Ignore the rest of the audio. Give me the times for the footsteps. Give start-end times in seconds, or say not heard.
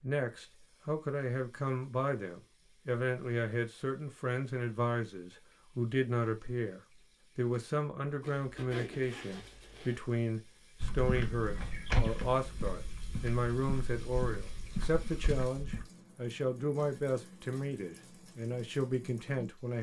10.8-15.8.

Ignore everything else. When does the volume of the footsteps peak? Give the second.
12 s.